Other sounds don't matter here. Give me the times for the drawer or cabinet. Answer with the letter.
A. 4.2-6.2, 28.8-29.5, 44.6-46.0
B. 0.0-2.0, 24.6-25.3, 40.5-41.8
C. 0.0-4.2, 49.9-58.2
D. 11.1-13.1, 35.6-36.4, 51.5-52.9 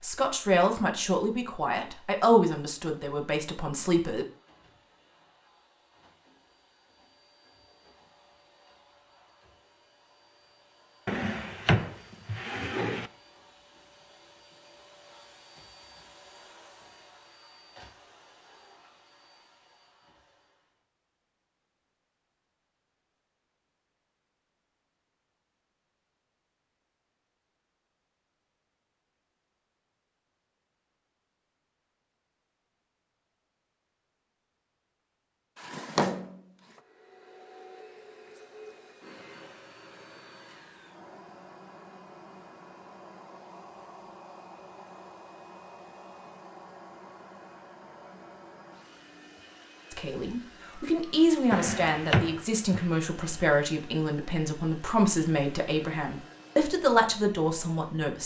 D.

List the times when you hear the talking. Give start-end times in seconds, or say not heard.
0.0-4.2, 49.9-58.2.